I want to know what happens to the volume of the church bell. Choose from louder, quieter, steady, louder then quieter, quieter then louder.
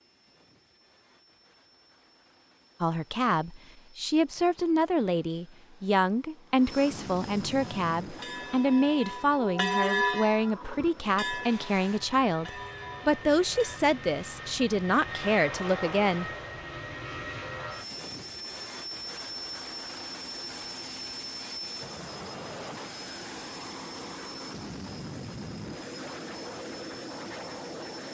louder then quieter.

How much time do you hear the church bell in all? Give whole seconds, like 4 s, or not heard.
6 s.